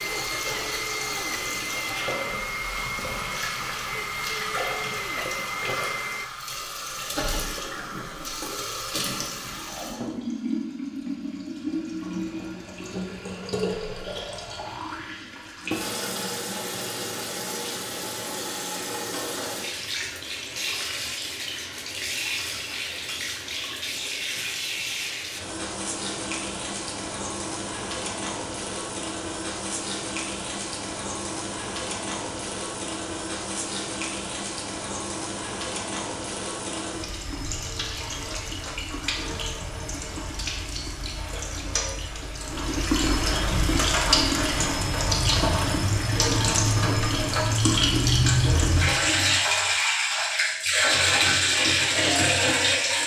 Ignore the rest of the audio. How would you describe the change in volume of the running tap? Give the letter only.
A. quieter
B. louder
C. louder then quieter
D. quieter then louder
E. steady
B.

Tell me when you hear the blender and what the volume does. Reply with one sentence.
The blender can be heard from 0.0 to 6.3 s, at a steady volume.